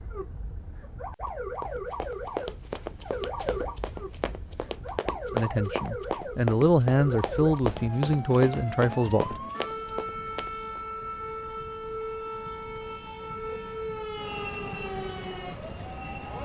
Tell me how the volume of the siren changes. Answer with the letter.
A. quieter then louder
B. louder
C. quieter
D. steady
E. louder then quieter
D.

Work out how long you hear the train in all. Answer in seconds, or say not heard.
2 s.